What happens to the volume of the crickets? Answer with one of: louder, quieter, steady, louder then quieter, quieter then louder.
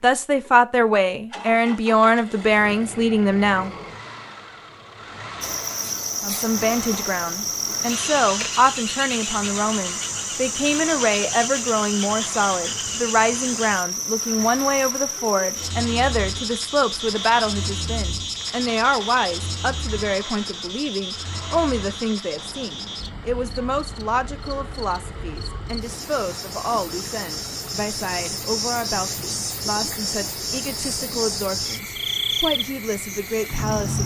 quieter then louder.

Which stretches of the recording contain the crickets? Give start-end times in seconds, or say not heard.
5.4-34.0.